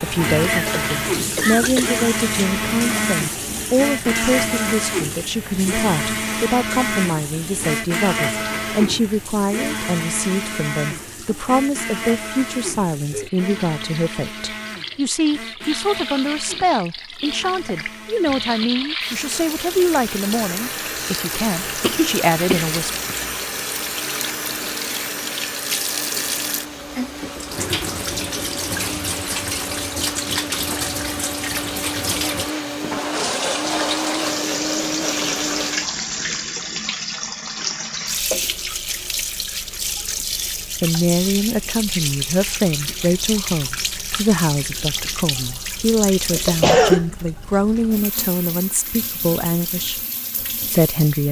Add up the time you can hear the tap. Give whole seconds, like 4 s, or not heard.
51 s.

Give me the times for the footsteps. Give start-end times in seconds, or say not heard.
not heard.